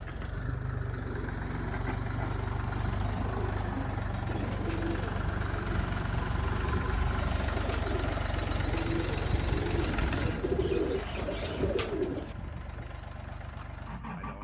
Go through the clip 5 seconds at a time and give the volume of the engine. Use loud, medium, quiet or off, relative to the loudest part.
loud, loud, medium.